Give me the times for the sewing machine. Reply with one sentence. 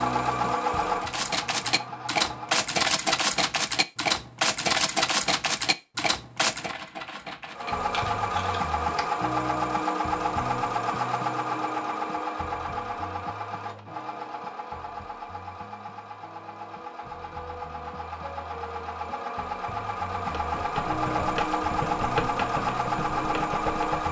You can hear the sewing machine from 0.0 to 2.7 s and from 7.5 to 24.0 s.